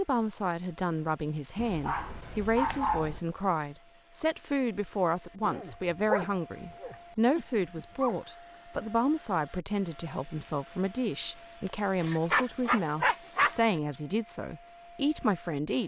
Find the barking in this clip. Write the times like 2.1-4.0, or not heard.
1.6-3.2, 5.4-8.2, 12.0-13.6.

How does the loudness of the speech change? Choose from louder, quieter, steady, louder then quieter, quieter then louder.
steady.